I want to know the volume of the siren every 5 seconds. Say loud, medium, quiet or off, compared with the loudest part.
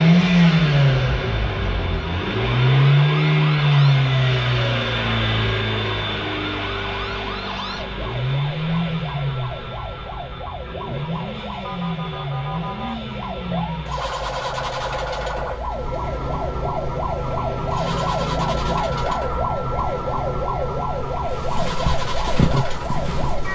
medium, medium, medium, loud, loud.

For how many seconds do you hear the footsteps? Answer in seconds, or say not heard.
2 s.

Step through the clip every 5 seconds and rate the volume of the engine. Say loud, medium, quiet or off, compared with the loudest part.
loud, medium, quiet, quiet, quiet.